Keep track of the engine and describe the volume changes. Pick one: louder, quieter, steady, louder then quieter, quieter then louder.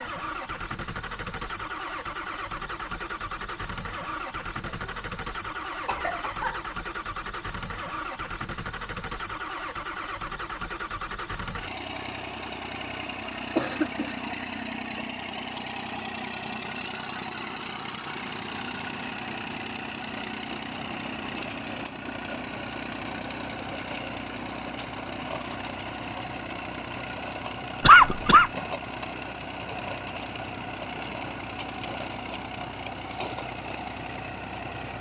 steady.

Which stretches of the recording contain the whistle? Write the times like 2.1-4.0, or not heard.
not heard.